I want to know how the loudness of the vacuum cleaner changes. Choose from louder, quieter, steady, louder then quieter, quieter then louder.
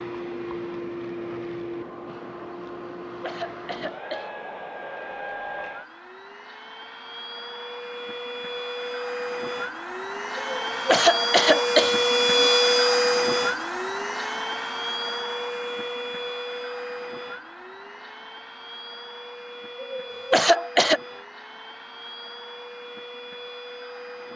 louder then quieter.